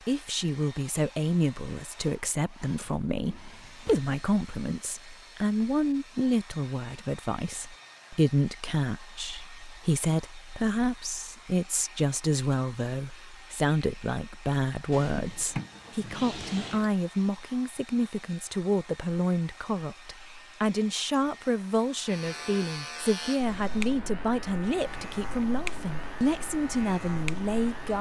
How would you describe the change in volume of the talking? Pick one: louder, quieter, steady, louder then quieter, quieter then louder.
steady.